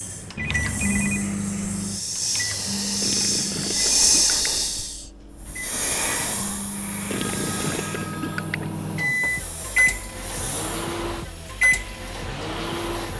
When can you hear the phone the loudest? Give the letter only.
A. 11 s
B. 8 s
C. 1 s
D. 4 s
C.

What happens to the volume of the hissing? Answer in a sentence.
The volume of the hissing goes up, then down.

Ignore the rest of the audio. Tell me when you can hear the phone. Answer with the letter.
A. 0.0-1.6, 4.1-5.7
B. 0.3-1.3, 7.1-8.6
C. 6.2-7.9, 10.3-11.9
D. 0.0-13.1
B.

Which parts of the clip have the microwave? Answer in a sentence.
The microwave can be heard from 0.0 to 13.1 s.